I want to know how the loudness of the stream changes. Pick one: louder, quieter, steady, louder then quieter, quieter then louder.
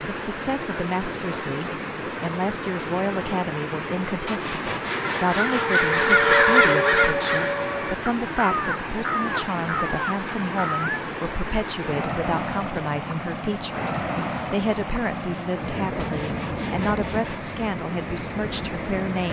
steady.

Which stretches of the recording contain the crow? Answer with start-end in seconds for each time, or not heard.
4.8-11.1.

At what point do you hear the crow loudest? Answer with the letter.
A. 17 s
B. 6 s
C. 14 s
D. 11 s
B.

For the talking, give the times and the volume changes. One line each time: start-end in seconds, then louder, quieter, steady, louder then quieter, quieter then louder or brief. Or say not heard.
0.0-19.2 steady.